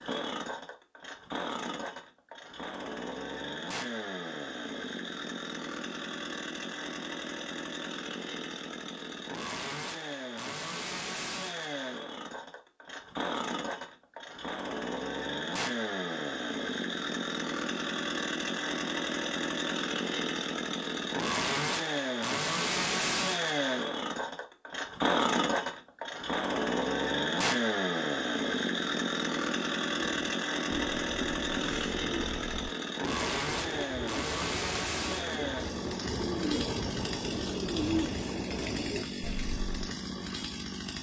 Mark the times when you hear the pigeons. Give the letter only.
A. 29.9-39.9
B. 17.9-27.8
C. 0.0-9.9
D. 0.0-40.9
A.